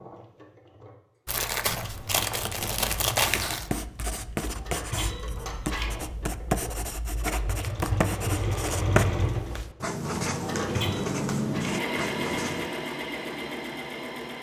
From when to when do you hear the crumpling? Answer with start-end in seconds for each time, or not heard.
1.2-3.7, 7.5-8.1.